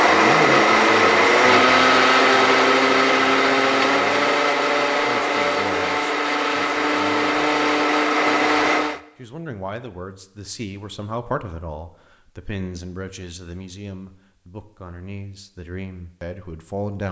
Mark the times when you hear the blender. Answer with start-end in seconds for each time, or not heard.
0.0-9.0.